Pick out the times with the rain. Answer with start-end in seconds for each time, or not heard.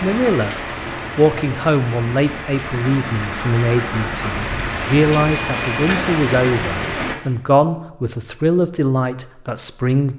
0.0-7.2.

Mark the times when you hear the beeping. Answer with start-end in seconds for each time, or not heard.
5.1-6.0.